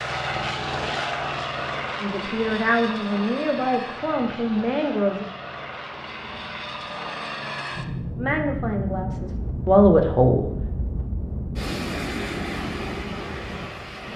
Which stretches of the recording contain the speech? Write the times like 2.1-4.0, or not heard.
2.0-5.2, 8.2-10.5.